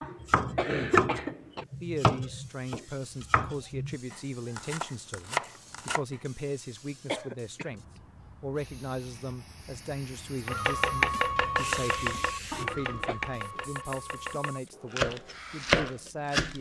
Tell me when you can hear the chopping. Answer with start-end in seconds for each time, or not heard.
0.2-6.2, 10.4-16.5.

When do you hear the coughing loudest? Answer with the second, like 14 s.
1 s.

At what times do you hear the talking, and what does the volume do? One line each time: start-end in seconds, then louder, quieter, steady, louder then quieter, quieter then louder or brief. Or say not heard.
1.8-16.5 steady.